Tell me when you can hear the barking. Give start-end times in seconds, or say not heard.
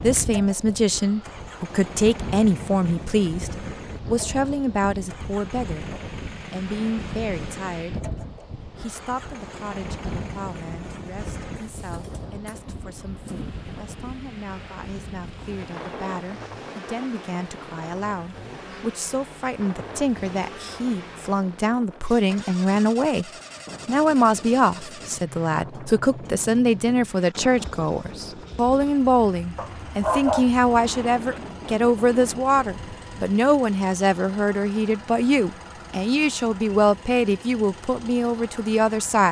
29.6-31.2.